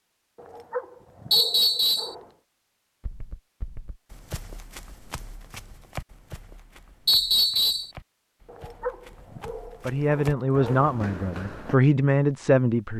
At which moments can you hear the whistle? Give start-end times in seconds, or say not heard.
1.3-2.1, 7.0-7.9.